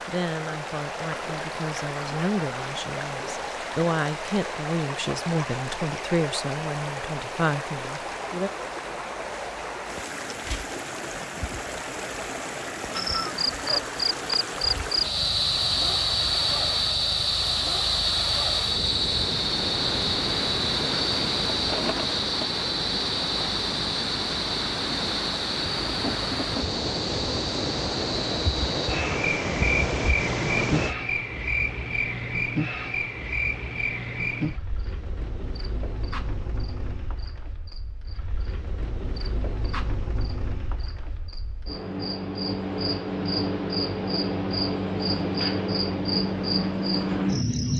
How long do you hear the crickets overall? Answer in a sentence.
The crickets can be heard for 35 seconds in total.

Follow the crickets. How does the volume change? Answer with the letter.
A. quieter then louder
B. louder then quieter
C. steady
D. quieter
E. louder
A.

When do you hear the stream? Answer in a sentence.
The stream can be heard from 0.0 to 30.9 s.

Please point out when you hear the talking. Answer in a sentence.
The talking can be heard from 0.1 to 8.5 s.